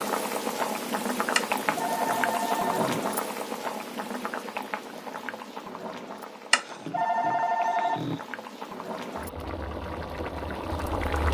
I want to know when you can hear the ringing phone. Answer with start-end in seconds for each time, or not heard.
1.4-3.0, 6.5-8.2.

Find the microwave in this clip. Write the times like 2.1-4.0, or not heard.
not heard.